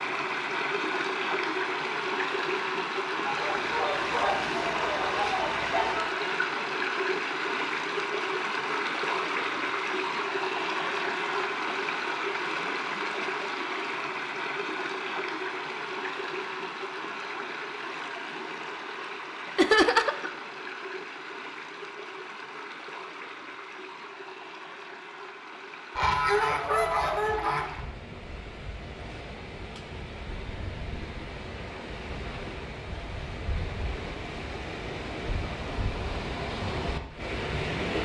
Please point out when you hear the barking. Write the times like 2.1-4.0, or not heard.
not heard.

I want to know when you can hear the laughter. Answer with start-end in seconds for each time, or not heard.
19.6-20.3.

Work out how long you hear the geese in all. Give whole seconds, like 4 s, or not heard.
5 s.